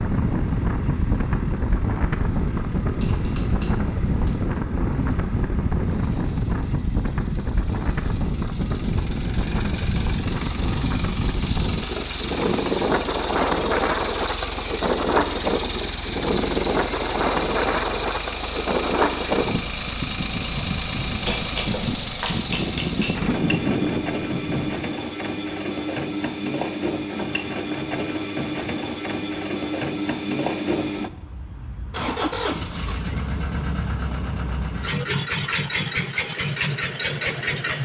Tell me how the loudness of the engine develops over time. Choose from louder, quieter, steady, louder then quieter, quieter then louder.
louder.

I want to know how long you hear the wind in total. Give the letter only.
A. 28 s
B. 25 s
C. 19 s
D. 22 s
B.